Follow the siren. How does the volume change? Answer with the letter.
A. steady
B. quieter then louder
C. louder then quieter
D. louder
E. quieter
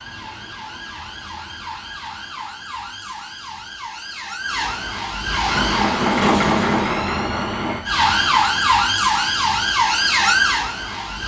D.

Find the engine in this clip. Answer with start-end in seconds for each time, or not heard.
5.4-7.8.